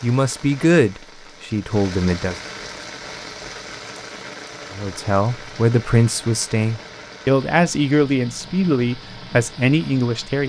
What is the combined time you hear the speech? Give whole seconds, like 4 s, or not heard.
8 s.